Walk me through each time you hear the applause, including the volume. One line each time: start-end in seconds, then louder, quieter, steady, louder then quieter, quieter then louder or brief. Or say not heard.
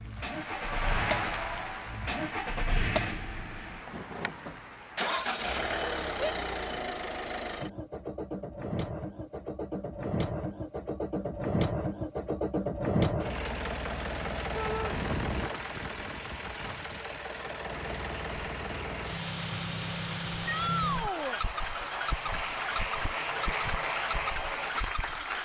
0.0-5.2 quieter
17.6-25.4 louder.